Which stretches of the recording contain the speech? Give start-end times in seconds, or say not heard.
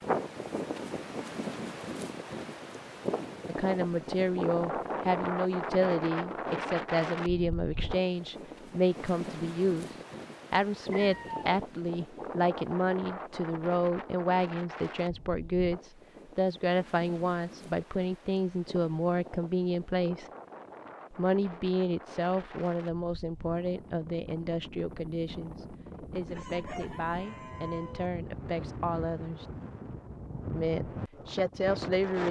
3.5-20.3, 21.1-29.4, 30.5-32.2.